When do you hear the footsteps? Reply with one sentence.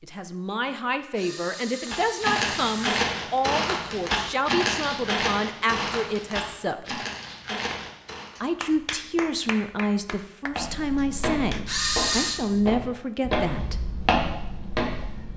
You can hear the footsteps from 1.9 to 8.3 s and from 10.5 to 15.3 s.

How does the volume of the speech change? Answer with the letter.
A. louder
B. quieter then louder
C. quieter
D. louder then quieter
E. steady
E.